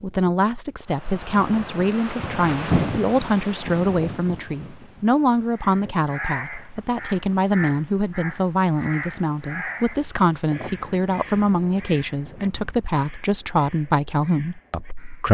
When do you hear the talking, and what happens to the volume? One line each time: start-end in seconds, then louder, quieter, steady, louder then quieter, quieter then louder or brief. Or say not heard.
0.0-15.2 steady.